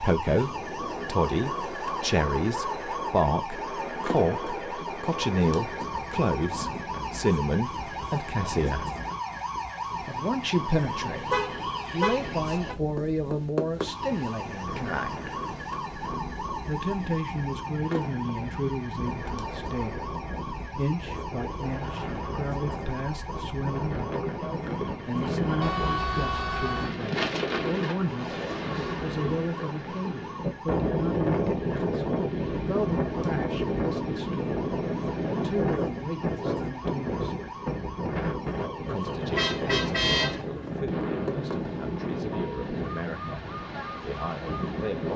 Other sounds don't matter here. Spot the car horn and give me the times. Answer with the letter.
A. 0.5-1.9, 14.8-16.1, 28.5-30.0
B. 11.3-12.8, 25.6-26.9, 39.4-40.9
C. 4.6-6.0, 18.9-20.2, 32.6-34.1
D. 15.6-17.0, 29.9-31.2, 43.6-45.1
B.